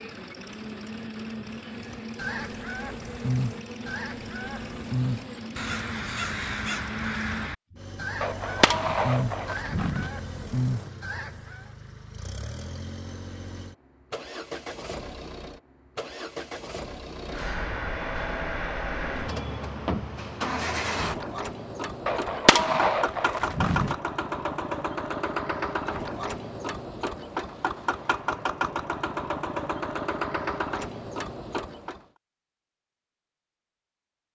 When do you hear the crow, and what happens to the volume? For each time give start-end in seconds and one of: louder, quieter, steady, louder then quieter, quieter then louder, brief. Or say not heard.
1.9-11.7 steady.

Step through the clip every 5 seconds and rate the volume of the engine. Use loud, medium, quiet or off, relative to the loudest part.
medium, medium, medium, loud, loud, loud, loud.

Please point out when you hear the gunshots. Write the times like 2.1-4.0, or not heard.
8.2-10.1, 22.1-23.9.